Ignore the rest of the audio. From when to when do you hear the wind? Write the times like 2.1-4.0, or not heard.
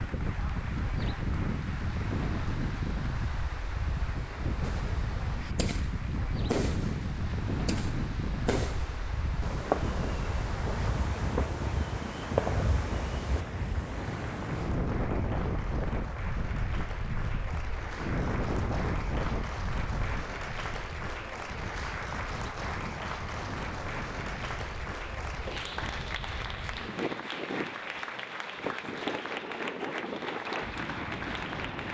0.0-31.8.